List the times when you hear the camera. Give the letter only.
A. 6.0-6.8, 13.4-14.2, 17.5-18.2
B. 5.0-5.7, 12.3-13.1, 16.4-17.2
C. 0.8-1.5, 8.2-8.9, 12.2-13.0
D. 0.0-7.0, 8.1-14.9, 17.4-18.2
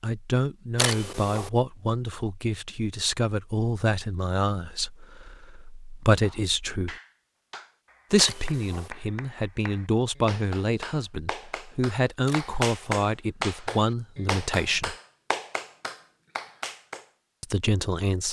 C.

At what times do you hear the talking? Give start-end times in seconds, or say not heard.
0.0-7.0, 8.1-14.9, 17.4-18.2.